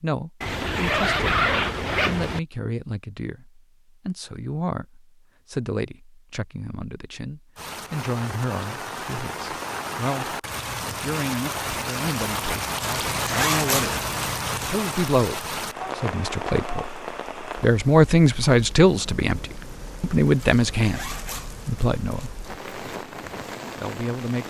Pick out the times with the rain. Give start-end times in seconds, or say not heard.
7.5-24.4.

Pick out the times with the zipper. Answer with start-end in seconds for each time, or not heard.
0.4-2.4, 12.8-14.7, 20.4-22.3.